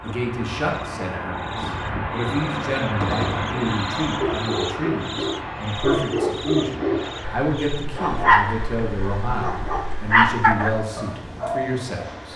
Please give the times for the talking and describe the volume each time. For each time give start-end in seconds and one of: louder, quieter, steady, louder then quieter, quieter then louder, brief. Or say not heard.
0.0-12.3 steady.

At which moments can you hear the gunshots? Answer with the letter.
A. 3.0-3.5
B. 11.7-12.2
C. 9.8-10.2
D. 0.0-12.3
A.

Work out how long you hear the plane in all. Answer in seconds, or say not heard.
12 s.